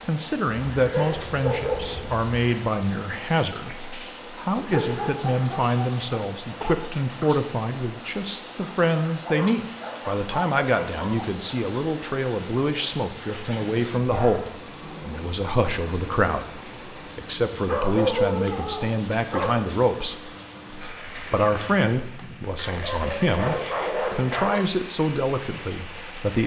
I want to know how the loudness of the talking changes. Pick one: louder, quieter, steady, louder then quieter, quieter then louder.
steady.